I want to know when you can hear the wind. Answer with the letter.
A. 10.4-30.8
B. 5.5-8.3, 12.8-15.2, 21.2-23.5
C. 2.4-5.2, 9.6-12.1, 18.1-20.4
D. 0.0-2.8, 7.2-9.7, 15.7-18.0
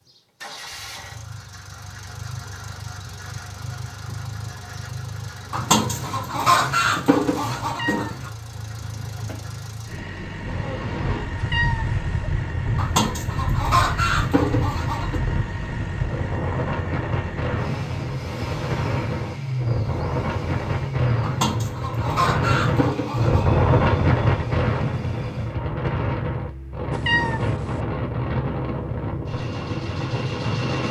A.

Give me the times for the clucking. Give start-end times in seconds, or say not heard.
5.5-8.3, 12.8-15.2, 21.2-23.5.